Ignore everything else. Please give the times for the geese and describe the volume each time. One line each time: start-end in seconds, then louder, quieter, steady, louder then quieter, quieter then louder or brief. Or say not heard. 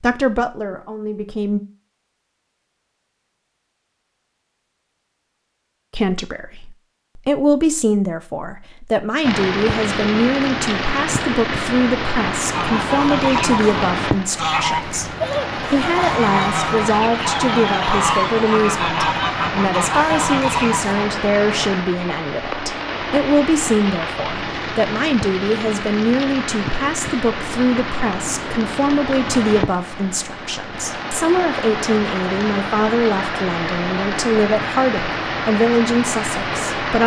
12.5-21.1 steady.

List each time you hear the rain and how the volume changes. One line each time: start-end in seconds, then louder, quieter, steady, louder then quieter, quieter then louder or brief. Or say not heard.
9.2-37.0 steady.